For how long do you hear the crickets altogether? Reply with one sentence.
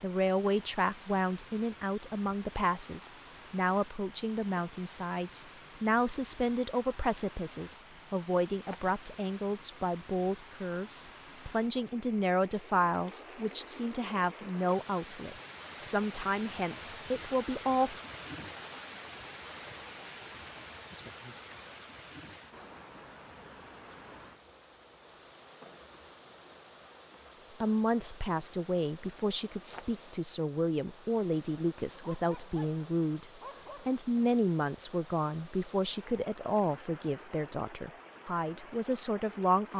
The crickets can be heard for 40 seconds in total.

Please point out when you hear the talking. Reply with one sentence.
The talking can be heard from 0.0 to 18.0 s and from 27.6 to 39.7 s.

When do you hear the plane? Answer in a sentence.
The plane can't be heard in this clip.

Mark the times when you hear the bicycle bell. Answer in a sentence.
You can't hear the bicycle bell here.